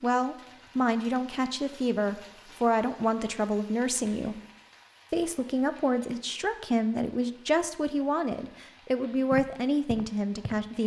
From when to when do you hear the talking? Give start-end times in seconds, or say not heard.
0.0-4.4, 5.1-10.8.